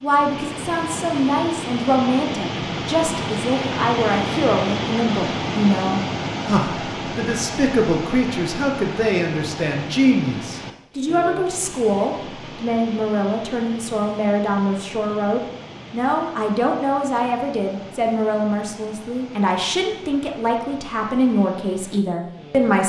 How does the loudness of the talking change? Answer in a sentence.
The volume of the talking stays about the same.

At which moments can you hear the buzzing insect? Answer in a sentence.
The buzzing insect can't be heard in this clip.